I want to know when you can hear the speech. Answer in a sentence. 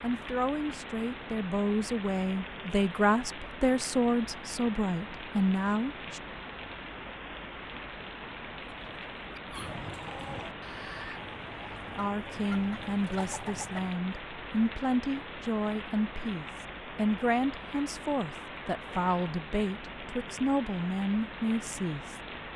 You can hear the speech from 0.0 to 6.2 s and from 11.9 to 22.2 s.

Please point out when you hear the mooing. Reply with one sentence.
The mooing can't be heard in this clip.